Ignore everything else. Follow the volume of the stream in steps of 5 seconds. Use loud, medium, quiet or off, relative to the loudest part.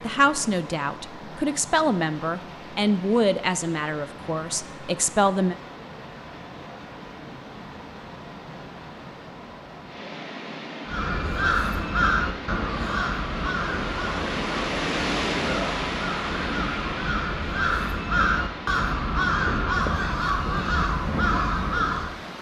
medium, medium, loud, loud, medium.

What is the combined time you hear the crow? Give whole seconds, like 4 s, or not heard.
11 s.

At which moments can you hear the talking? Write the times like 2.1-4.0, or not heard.
0.0-5.5.